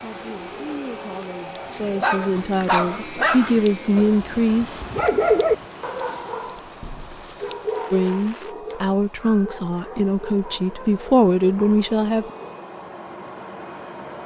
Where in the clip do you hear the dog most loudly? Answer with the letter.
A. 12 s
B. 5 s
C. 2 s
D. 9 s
B.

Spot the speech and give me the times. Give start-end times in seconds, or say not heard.
0.0-4.8, 7.9-12.3.